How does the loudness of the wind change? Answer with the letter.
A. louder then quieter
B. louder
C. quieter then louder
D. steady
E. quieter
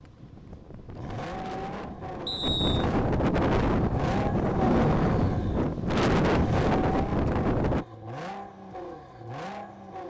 B.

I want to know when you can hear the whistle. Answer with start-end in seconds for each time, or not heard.
2.2-2.9.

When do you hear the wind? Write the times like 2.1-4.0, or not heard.
0.0-7.8.